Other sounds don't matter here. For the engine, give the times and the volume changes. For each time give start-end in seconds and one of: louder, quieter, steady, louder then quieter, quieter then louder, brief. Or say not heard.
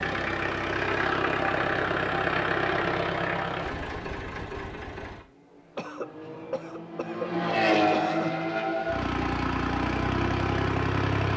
0.0-11.3 quieter then louder.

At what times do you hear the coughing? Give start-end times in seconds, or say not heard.
5.8-8.3.